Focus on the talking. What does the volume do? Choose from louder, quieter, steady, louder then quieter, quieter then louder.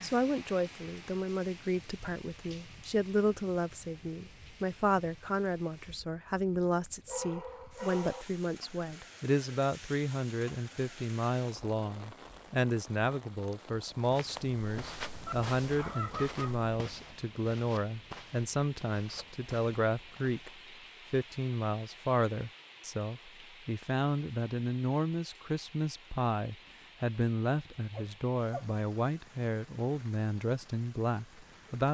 steady.